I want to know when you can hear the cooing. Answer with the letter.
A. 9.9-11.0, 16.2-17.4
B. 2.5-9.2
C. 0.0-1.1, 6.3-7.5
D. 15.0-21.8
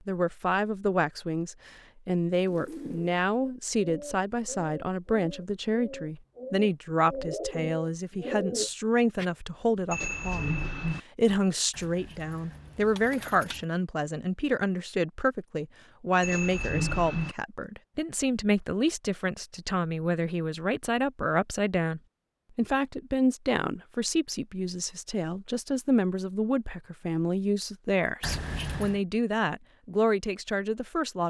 B.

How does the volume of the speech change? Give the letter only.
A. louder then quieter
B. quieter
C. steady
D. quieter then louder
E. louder
C.